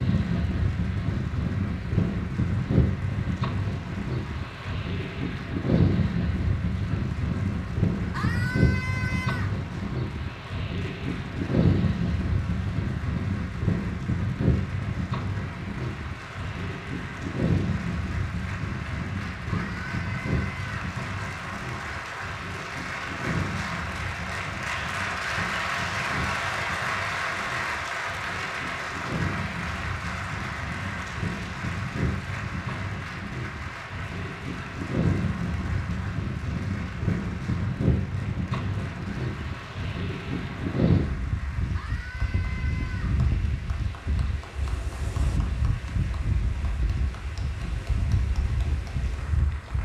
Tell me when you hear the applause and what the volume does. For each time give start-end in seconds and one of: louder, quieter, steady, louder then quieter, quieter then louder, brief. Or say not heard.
0.0-49.8 louder then quieter.